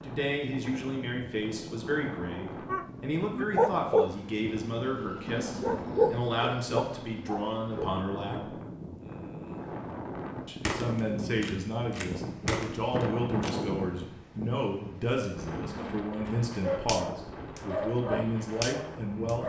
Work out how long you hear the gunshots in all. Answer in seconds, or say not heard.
3 s.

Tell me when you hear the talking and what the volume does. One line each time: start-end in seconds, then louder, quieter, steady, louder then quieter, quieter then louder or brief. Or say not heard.
0.0-8.6 steady
10.4-19.4 steady.